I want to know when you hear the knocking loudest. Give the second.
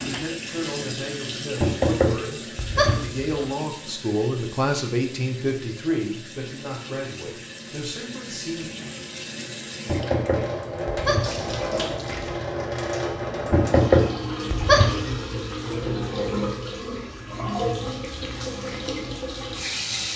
14 s.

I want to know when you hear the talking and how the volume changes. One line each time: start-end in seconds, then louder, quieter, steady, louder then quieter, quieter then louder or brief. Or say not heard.
0.0-8.7 louder then quieter.